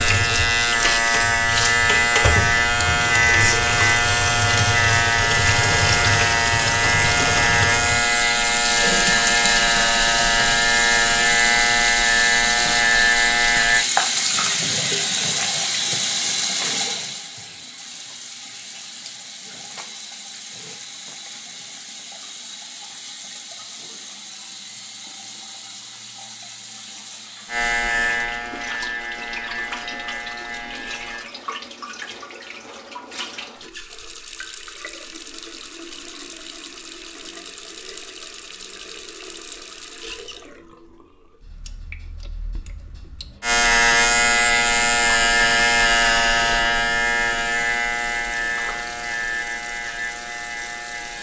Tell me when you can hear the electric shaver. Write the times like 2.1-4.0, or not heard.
0.0-13.8, 27.4-31.2, 43.4-51.1.